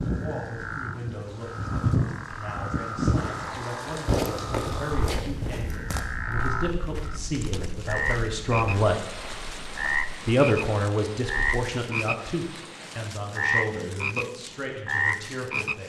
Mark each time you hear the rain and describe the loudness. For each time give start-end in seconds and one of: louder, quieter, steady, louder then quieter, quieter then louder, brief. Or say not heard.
0.0-13.2 quieter.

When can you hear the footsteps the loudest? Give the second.
4 s.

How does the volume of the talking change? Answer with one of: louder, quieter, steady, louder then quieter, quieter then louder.
louder then quieter.